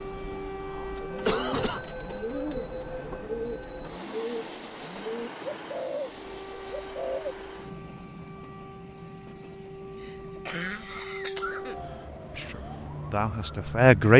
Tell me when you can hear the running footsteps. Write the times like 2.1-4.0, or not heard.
not heard.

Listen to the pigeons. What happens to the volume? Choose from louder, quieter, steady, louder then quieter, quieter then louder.
steady.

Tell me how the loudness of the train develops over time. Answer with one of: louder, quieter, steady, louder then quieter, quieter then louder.
quieter.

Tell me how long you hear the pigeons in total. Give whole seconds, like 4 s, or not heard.
7 s.